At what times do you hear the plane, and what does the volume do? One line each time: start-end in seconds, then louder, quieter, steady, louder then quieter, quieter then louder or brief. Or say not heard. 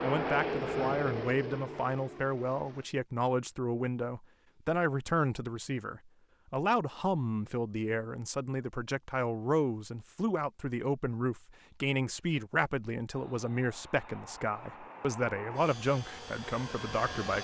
0.0-2.9 brief
13.1-17.4 louder.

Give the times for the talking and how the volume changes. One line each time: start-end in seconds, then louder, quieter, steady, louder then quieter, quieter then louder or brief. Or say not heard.
0.0-17.4 steady.